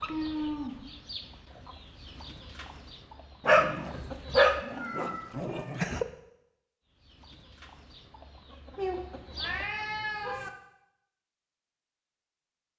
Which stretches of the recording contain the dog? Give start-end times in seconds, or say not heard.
3.5-6.0.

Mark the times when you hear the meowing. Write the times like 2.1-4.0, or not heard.
0.1-0.8, 4.7-5.8, 8.8-10.5.